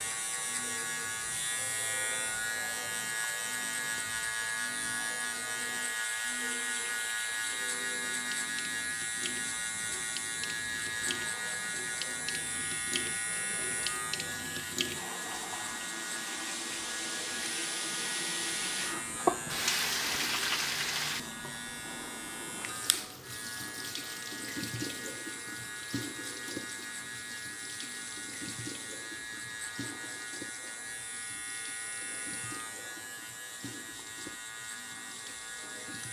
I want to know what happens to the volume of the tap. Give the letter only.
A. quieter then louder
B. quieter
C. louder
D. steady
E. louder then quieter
E.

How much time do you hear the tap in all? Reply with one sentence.
You can hear the tap for 36 seconds altogether.